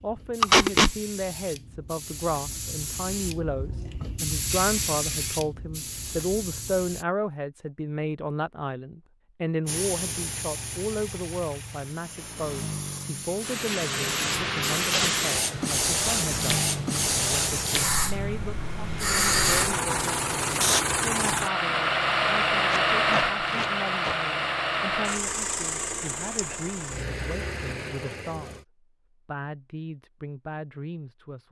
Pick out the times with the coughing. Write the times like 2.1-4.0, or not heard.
not heard.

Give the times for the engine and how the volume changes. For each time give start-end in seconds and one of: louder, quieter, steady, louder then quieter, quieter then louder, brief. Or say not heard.
9.8-28.6 louder then quieter.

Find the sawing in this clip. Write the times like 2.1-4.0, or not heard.
not heard.